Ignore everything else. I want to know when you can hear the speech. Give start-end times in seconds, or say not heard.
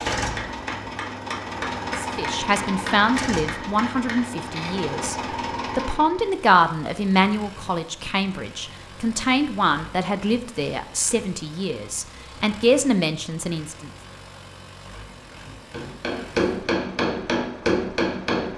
1.9-5.2, 5.8-13.9.